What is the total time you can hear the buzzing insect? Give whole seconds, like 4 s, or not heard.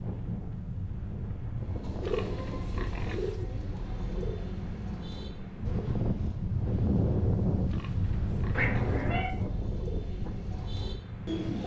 not heard.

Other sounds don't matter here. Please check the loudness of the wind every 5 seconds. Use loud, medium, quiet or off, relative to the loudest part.
medium, loud, medium.